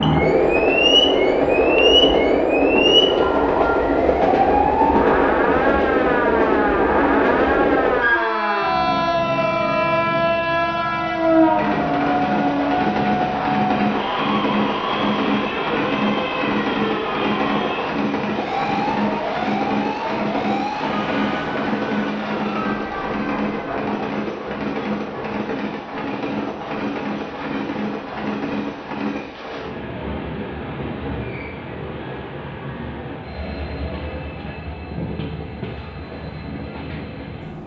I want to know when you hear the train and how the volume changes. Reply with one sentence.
The train can be heard from 0.0 to 37.6 s, getting quieter.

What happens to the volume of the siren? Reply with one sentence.
The loudness of the siren goes down.